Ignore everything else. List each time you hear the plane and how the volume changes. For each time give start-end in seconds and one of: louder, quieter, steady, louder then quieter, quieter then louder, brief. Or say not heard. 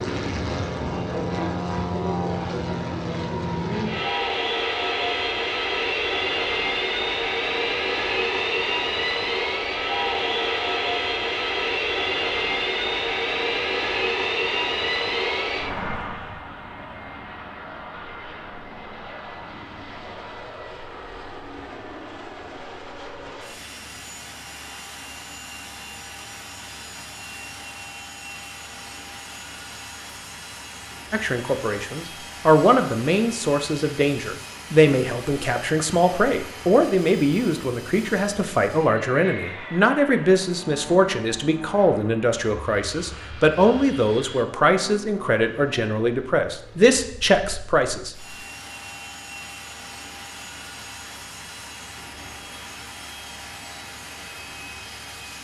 0.0-55.4 quieter.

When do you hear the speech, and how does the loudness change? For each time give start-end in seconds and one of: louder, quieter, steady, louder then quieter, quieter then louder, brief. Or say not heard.
31.1-48.4 steady.